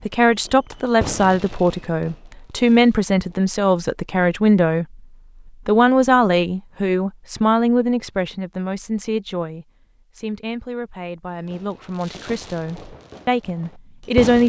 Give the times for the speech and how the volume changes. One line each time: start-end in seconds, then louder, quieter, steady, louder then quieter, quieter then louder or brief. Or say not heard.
0.0-14.4 quieter.